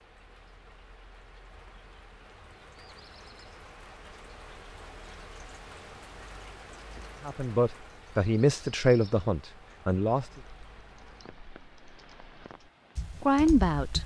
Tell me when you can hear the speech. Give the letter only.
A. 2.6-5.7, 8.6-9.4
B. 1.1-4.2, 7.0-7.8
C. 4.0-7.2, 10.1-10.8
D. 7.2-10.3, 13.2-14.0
D.